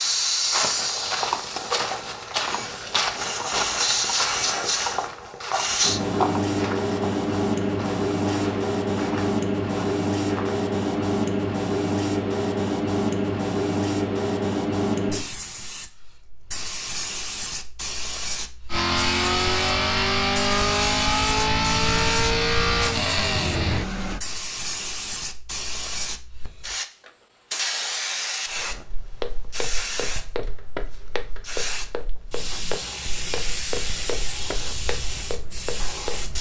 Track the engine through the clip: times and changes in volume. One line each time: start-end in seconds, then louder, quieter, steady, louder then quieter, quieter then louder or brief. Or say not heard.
18.7-24.2 steady.